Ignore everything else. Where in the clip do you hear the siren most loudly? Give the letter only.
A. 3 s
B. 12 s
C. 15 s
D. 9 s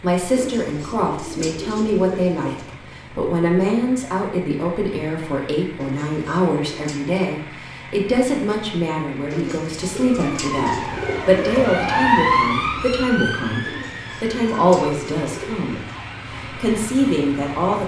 B.